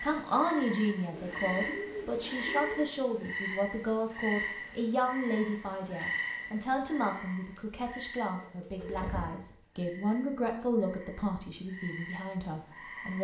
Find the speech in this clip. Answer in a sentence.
You can hear the speech from 0.0 to 13.1 s.